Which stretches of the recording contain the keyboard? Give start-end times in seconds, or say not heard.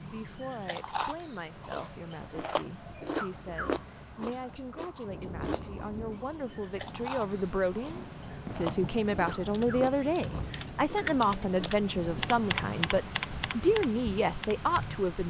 9.4-14.8.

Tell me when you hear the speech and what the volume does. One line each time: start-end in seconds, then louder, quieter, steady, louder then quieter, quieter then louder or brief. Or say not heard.
0.0-15.2 louder.